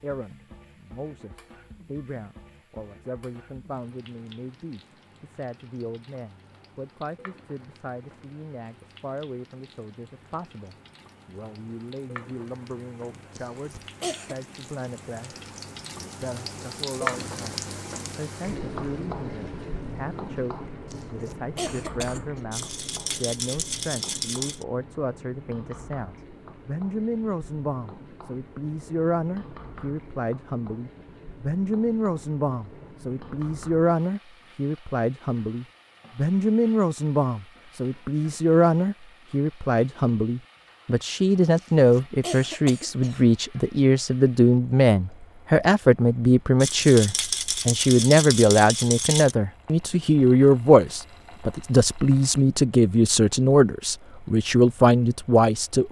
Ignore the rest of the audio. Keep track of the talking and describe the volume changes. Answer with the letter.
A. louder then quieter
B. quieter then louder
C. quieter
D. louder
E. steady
D.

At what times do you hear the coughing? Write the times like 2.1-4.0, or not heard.
13.3-14.3, 20.9-22.4, 41.5-43.2.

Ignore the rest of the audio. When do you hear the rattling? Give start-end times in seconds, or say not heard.
22.5-24.6, 46.6-49.4.